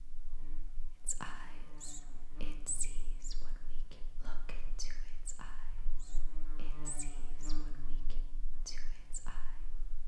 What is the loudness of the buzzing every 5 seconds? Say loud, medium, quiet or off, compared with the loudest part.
medium, loud.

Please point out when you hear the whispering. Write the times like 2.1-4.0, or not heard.
1.1-9.5.